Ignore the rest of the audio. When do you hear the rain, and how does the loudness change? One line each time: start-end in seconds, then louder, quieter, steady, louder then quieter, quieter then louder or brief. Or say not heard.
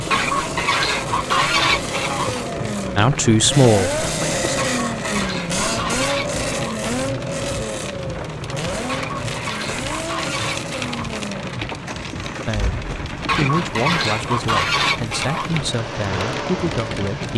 0.0-17.3 steady.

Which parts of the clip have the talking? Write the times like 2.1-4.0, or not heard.
3.0-4.6, 12.4-17.3.